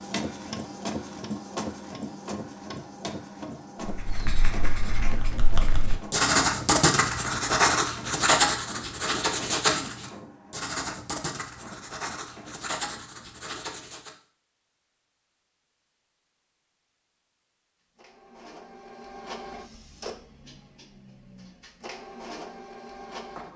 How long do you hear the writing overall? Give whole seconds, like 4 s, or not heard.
10 s.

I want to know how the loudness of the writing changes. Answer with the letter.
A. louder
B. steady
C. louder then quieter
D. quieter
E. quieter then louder
C.